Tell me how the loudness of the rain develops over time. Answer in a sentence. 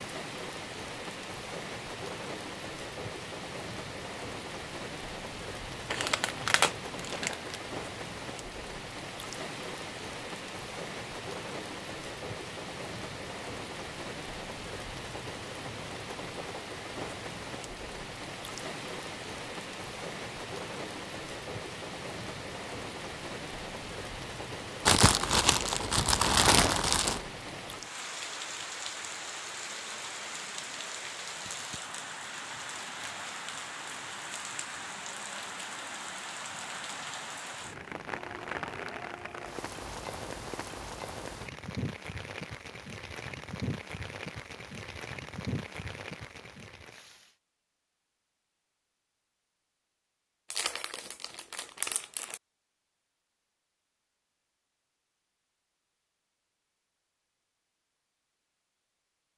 The loudness of the rain stays about the same.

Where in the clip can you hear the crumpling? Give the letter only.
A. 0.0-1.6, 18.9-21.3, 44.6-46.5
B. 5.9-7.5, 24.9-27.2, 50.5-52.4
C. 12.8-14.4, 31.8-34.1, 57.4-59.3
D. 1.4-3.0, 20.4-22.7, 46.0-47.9
B.